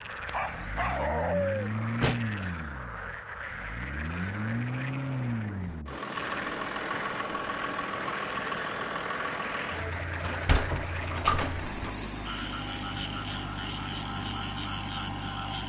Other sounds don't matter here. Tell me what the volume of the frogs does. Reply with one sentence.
The loudness of the frogs stays about the same.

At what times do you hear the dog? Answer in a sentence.
The dog can be heard from 0.2 to 1.7 s.